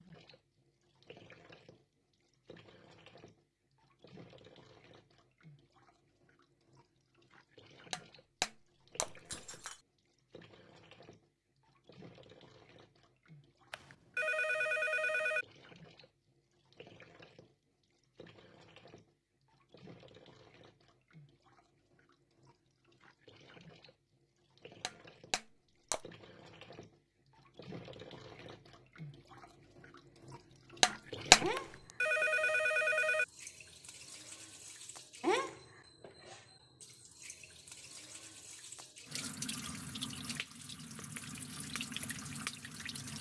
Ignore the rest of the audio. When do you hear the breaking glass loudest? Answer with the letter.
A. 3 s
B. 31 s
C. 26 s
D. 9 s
B.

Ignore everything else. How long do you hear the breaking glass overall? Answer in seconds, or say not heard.
4 s.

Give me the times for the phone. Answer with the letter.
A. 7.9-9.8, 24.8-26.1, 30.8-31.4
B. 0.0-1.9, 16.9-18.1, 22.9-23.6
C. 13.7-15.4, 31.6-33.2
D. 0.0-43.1
C.